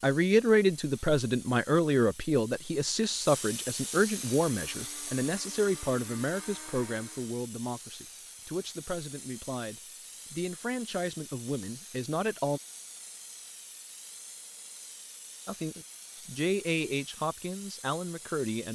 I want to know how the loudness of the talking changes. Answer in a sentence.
The volume of the talking goes down.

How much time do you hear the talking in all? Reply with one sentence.
You can hear the talking for 16 seconds altogether.